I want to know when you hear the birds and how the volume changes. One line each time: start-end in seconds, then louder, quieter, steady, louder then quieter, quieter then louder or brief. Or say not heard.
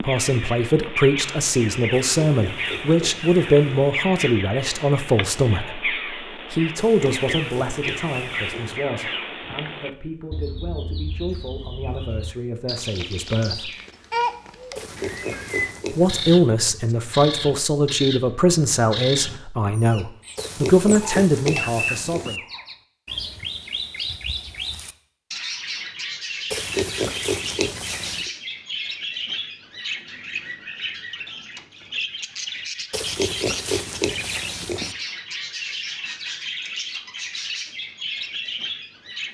0.0-39.3 steady.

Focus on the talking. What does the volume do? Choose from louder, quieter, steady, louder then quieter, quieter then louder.
quieter then louder.